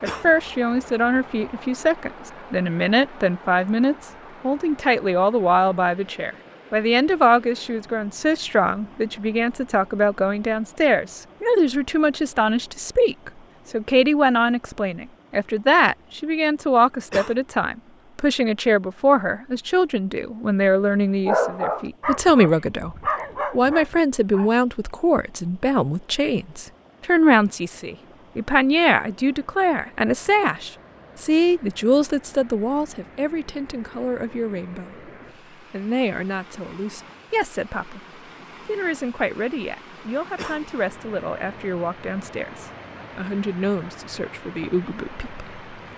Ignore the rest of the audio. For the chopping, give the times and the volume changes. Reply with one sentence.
You can't hear the chopping here.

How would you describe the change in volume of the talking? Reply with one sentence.
The loudness of the talking goes down.